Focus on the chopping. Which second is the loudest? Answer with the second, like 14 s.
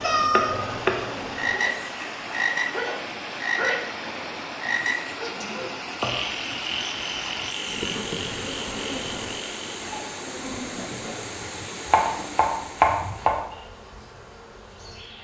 13 s.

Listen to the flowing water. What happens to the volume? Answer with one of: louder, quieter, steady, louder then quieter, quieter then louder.
steady.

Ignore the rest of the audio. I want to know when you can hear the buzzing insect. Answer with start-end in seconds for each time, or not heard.
0.0-1.7, 7.7-15.2.